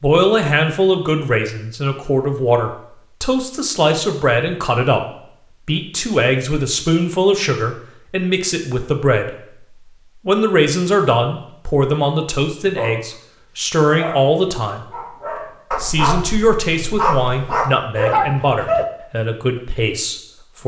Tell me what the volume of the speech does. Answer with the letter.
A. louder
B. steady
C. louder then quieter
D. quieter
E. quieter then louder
B.